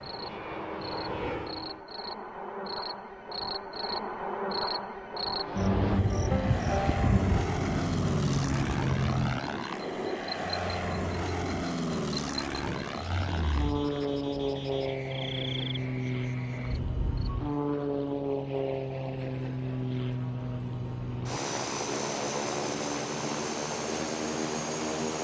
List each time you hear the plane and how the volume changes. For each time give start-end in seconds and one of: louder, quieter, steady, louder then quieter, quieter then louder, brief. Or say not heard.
0.0-1.9 brief
5.3-25.1 steady.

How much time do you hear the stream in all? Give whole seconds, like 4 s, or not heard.
not heard.